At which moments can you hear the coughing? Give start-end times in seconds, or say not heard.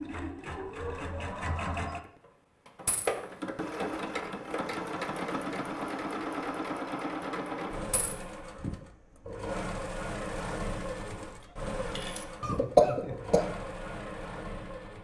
12.4-13.4.